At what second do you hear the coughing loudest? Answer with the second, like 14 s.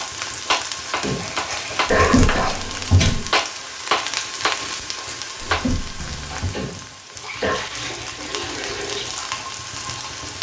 2 s.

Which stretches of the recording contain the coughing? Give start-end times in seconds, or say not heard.
1.0-2.6, 6.5-7.6.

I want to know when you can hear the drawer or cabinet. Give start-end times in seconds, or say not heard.
1.9-3.3, 5.4-6.5.